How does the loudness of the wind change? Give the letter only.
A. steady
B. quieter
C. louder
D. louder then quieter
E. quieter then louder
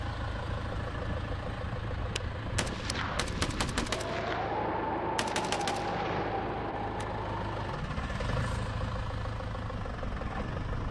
D.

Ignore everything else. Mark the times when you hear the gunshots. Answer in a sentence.
The gunshots can be heard from 2.1 to 7.0 s.